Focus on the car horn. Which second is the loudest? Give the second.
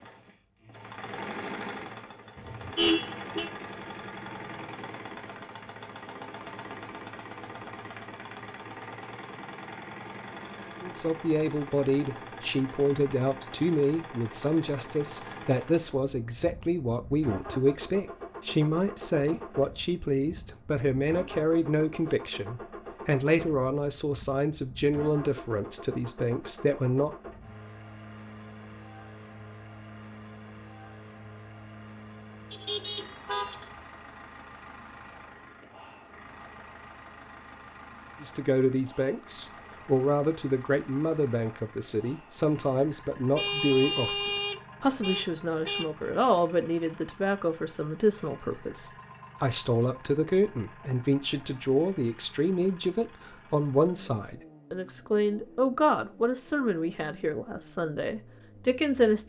3 s.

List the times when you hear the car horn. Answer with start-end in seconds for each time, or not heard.
2.4-3.5, 32.5-33.6, 43.4-45.9.